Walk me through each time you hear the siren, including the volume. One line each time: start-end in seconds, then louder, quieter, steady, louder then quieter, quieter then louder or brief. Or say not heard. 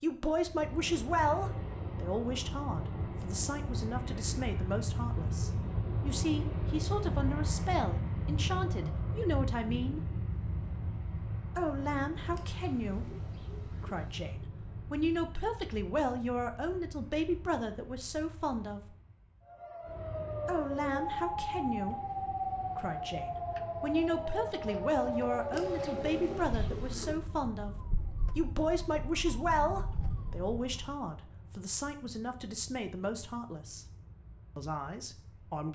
19.4-31.0 quieter.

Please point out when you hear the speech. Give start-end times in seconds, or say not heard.
0.0-10.0, 11.6-18.9, 20.4-33.9, 34.5-35.7.